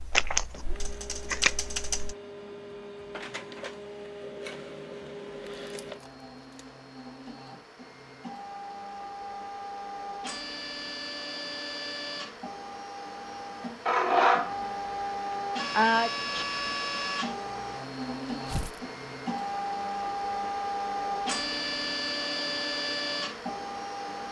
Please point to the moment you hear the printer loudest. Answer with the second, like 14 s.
14 s.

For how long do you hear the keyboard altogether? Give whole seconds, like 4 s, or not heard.
2 s.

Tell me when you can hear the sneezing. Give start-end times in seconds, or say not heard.
15.3-16.4.